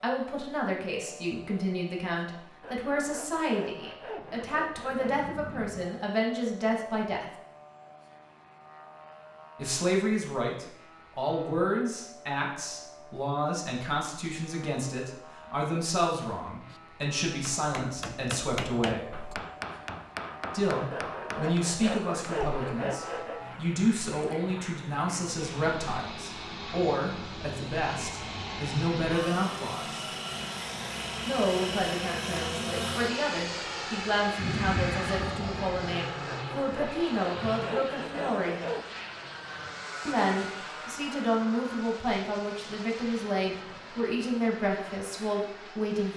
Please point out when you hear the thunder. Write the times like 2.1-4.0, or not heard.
4.2-5.8, 34.4-36.0.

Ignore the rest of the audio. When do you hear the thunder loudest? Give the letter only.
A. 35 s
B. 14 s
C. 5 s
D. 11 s
A.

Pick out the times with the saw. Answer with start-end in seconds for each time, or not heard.
2.6-5.2, 20.9-23.4, 36.2-38.9.